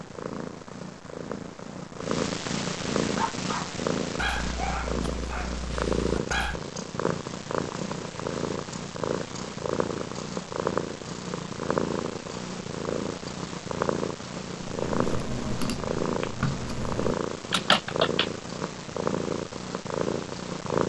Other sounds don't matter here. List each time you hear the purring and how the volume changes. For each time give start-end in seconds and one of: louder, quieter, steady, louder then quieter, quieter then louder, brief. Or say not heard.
0.0-20.8 steady.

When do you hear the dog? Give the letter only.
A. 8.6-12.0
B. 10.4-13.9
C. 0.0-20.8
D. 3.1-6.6
D.